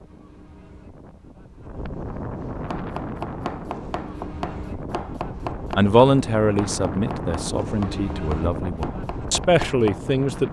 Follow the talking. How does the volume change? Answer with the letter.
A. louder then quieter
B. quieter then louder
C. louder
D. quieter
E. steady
B.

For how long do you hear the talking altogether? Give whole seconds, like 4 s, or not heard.
5 s.